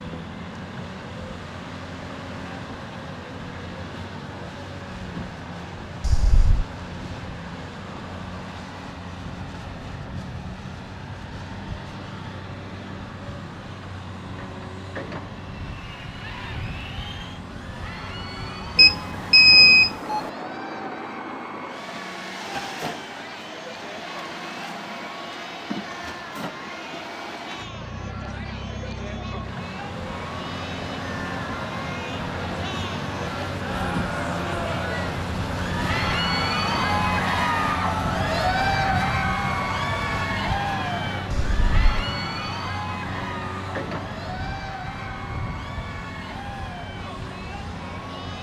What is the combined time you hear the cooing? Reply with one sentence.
You can't hear the cooing here.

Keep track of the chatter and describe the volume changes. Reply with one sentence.
The loudness of the chatter goes up, then down.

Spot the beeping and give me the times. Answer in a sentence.
The beeping can be heard from 6.0 to 6.7 s, from 18.8 to 20.3 s and from 41.3 to 41.9 s.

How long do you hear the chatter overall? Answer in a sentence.
You can hear the chatter for 33 seconds altogether.